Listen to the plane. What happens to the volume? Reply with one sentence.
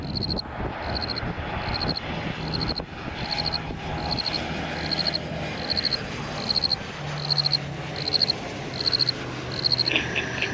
The loudness of the plane stays about the same.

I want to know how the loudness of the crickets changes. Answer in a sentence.
The volume of the crickets goes up.